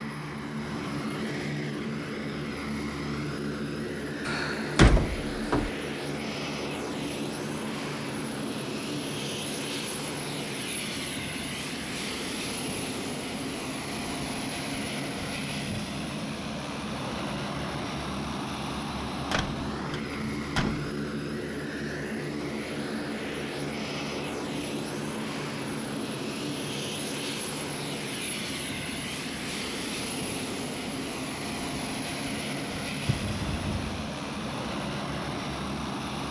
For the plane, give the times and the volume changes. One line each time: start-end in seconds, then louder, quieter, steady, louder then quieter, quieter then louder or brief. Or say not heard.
0.0-36.2 steady.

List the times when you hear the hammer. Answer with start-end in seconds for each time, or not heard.
not heard.